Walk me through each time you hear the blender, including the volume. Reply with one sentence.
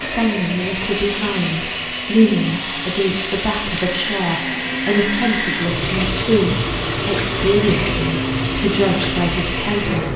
The blender can be heard from 0.0 to 10.1 s, at a steady volume.